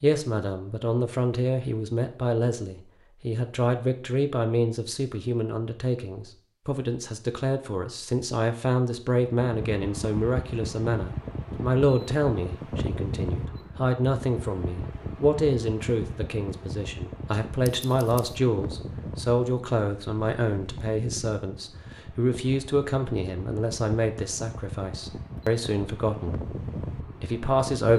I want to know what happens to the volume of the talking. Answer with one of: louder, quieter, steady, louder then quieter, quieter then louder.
steady.